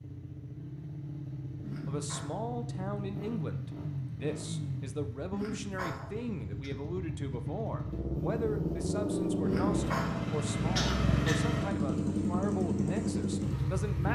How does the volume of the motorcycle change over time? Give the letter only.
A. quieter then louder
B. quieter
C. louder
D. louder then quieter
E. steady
C.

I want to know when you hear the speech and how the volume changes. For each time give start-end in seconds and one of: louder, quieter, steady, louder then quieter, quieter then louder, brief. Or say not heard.
1.9-14.0 steady.